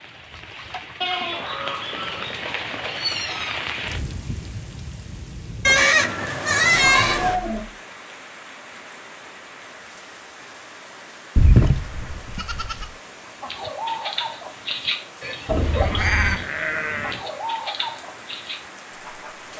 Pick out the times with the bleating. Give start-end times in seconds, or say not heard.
1.0-3.0, 5.7-7.4, 11.3-12.8, 15.6-17.2.